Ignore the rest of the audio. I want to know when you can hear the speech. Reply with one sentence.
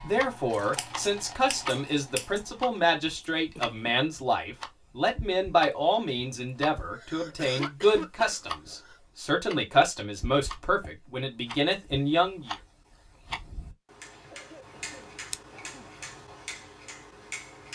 You can hear the speech from 0.0 to 12.6 s.